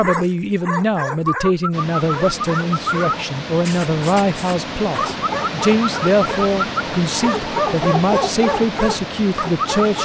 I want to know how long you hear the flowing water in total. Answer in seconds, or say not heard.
8 s.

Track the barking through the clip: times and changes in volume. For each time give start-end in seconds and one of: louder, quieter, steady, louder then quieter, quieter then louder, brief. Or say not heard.
0.0-10.0 steady.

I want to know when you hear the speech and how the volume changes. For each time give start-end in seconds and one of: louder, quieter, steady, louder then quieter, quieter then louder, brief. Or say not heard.
0.0-10.0 steady.